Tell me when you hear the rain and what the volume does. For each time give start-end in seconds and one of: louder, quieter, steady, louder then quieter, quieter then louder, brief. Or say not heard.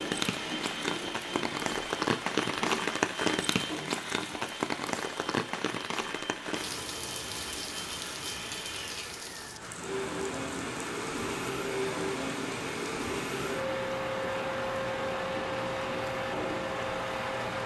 0.0-17.6 quieter.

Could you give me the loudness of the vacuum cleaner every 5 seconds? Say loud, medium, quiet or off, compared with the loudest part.
medium, medium, loud, loud.